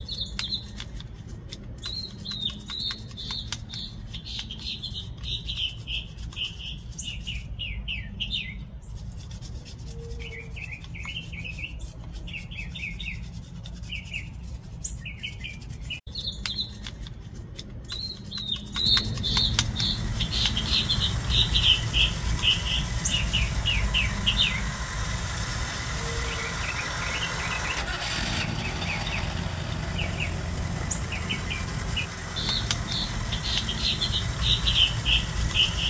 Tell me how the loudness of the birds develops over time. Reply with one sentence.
The loudness of the birds goes up.